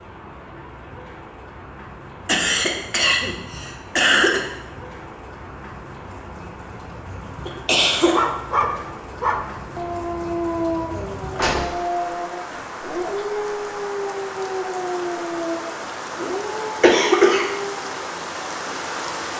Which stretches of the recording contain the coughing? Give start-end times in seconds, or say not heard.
2.2-4.5, 7.5-8.2, 16.8-17.5.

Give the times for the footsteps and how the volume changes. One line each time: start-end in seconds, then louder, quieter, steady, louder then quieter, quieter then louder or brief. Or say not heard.
not heard.